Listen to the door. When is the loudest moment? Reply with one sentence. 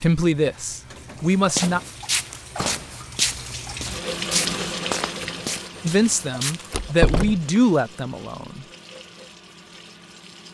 The loudest moment of the door is at 7 seconds.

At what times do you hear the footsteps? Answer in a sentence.
You can hear the footsteps from 1.3 to 6.9 s.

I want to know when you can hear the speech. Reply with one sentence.
You can hear the speech from 0.0 to 1.8 s and from 5.8 to 8.7 s.